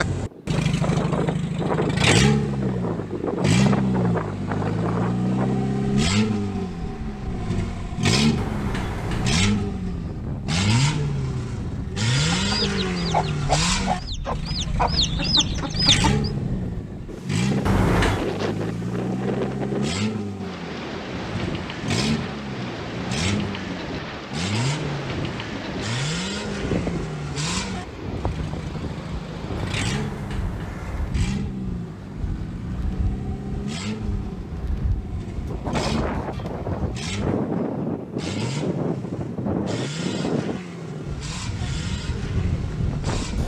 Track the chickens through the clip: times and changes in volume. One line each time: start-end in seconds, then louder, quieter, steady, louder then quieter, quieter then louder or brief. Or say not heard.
12.2-16.3 quieter then louder.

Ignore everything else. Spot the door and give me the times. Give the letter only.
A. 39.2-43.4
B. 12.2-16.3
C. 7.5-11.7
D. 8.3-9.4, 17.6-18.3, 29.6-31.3
D.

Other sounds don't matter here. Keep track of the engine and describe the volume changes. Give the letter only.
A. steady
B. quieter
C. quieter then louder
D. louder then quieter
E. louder
B.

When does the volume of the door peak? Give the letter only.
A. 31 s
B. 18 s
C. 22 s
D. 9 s
B.